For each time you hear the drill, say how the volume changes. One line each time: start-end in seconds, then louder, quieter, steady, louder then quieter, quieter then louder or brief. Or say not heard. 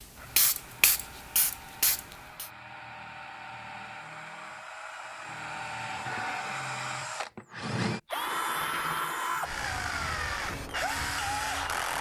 0.0-11.9 louder.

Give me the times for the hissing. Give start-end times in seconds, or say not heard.
0.0-2.5, 10.3-11.9.